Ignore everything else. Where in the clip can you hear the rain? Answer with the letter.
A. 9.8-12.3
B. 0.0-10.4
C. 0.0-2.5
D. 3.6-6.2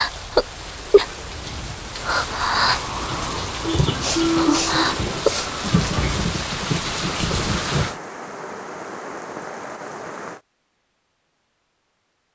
B.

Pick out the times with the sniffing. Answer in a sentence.
You can hear the sniffing from 3.6 to 6.2 s.